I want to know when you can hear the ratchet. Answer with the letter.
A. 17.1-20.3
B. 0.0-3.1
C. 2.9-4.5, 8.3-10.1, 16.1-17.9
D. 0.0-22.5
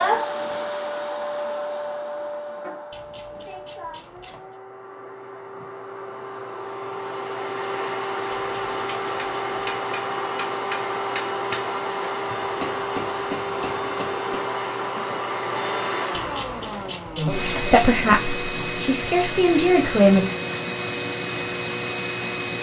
C.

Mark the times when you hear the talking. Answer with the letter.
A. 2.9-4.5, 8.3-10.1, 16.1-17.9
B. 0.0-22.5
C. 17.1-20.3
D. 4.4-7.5
C.